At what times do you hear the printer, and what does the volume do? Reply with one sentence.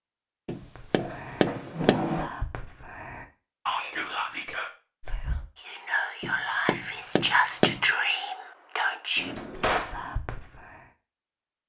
You can't hear the printer here.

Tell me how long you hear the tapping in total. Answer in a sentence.
The tapping can be heard for 3 seconds in total.